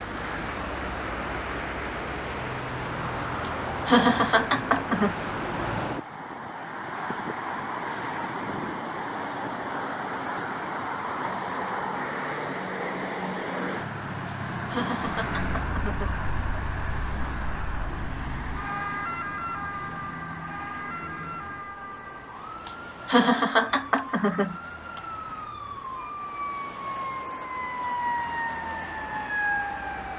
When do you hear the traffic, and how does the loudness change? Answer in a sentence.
The traffic can be heard from 0.0 to 30.1 s, getting quieter.